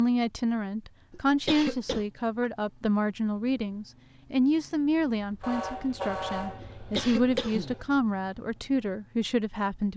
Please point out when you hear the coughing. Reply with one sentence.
You can hear the coughing from 1.1 to 2.0 s and from 6.8 to 7.8 s.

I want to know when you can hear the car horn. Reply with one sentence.
You can hear the car horn from 1.9 to 2.5 s and from 5.4 to 7.8 s.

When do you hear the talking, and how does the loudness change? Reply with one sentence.
You can hear the talking from 0.0 to 9.9 s, at a steady volume.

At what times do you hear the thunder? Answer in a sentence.
You can't hear the thunder here.